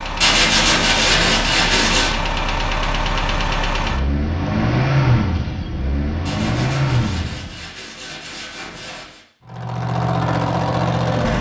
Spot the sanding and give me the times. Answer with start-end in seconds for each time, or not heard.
0.2-2.1, 6.2-9.2.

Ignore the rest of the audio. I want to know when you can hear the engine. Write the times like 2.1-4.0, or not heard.
0.0-7.7, 9.4-11.3.